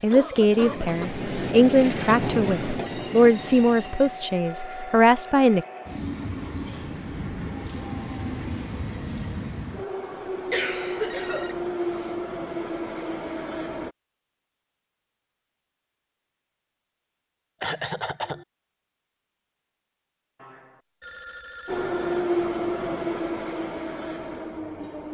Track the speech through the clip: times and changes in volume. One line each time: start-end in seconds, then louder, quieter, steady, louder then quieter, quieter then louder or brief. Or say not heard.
0.0-5.7 steady.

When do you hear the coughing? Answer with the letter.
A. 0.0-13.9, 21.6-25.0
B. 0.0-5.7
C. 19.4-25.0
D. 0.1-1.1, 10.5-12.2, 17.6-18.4
D.